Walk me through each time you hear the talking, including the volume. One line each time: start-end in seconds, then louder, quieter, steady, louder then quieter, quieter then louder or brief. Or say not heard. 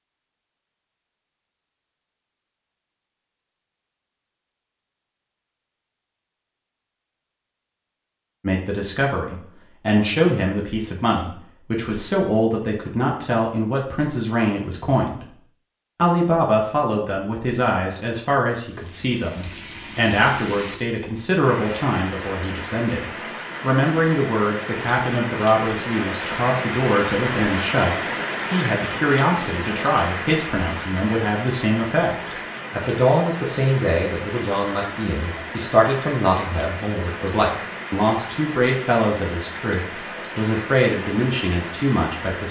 8.4-15.2 steady
15.9-42.4 steady.